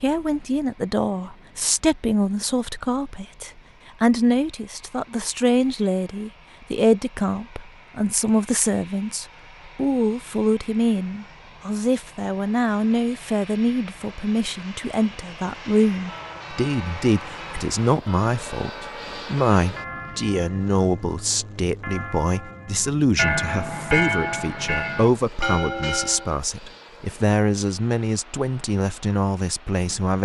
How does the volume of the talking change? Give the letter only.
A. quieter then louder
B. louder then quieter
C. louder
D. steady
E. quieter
D.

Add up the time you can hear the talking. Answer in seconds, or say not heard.
30 s.